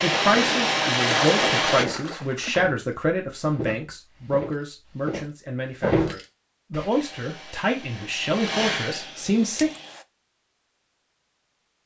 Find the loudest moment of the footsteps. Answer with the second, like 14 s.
6 s.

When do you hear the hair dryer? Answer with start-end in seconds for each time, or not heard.
0.0-1.9, 6.9-10.1.